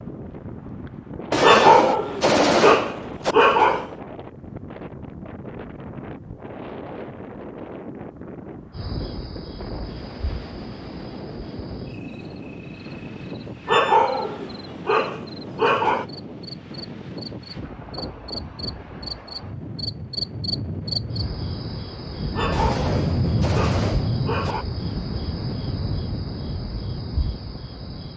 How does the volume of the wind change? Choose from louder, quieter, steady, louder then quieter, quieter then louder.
louder.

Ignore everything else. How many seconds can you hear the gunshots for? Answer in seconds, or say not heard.
4 s.